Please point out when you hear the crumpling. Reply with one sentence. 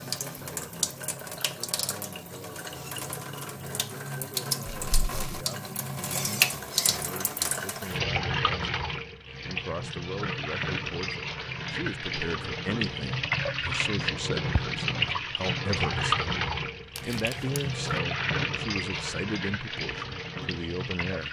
The crumpling can be heard from 4.7 to 5.5 s and from 16.9 to 17.6 s.